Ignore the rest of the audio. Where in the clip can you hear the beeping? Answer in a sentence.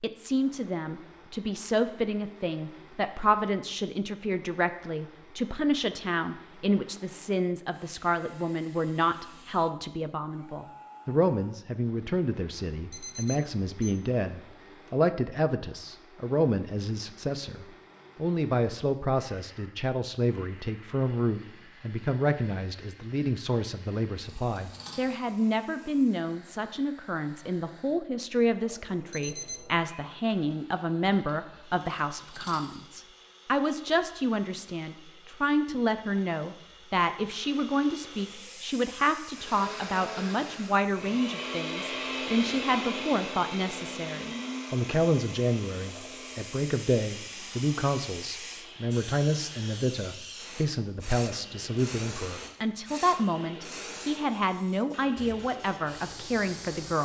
You can hear the beeping from 12.9 to 14.0 s and from 29.1 to 29.7 s.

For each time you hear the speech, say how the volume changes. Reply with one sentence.
The speech can be heard from 0.0 to 57.0 s, at a steady volume.